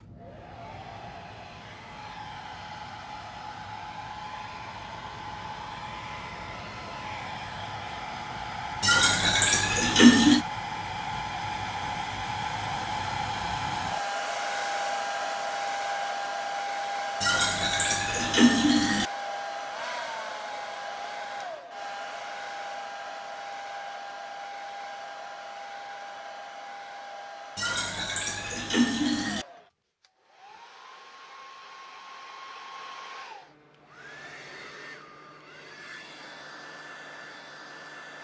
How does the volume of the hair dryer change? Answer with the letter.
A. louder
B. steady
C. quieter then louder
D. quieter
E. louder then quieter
E.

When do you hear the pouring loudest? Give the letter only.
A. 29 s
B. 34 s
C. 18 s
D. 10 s
D.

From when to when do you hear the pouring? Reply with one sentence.
You can hear the pouring from 8.8 to 10.4 s, from 17.2 to 19.1 s and from 27.6 to 29.4 s.